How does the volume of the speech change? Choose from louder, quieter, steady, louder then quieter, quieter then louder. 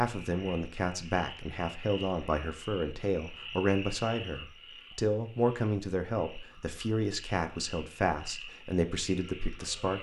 steady.